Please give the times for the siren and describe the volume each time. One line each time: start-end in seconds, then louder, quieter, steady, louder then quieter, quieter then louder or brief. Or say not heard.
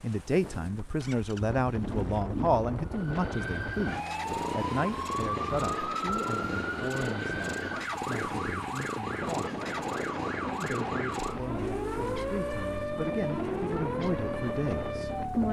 2.9-15.4 steady.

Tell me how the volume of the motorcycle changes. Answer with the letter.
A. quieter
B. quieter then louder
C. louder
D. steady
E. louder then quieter
D.